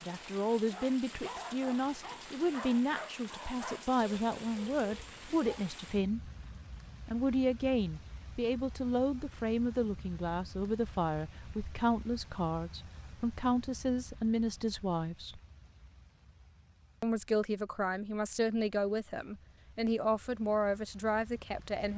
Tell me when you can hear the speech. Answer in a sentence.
You can hear the speech from 0.0 to 6.3 s, from 7.0 to 15.4 s and from 17.0 to 21.9 s.